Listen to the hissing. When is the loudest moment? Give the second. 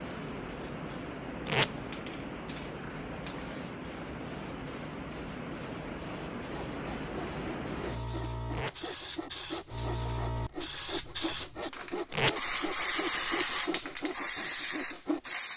13 s.